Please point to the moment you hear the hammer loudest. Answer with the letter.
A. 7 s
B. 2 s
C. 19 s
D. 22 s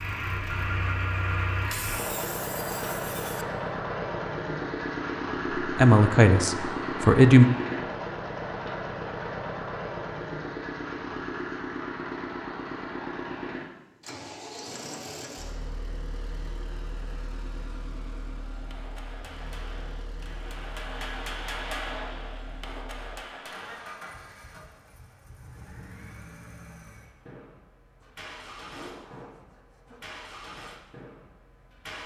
D.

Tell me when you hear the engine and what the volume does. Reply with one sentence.
The engine can be heard from 0.0 to 32.0 s, getting quieter.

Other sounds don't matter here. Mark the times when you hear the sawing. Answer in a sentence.
The sawing can be heard from 1.7 to 3.5 s and from 28.0 to 30.2 s.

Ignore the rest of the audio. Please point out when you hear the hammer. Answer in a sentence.
You can hear the hammer from 18.5 to 23.9 s.